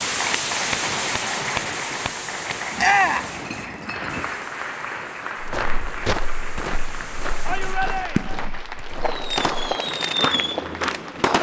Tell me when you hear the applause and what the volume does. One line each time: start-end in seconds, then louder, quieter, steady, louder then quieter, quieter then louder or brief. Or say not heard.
0.0-11.3 quieter.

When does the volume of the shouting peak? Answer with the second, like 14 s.
3 s.